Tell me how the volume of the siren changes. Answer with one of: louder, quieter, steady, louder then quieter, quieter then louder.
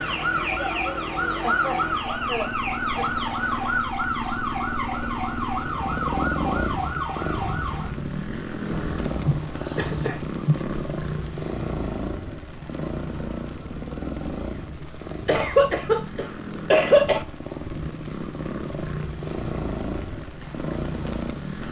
steady.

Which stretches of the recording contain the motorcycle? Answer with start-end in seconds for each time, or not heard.
0.0-21.6.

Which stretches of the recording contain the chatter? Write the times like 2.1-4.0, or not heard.
not heard.